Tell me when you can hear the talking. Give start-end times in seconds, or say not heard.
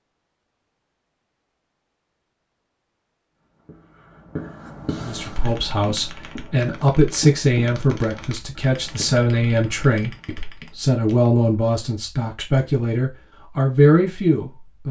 5.0-14.8.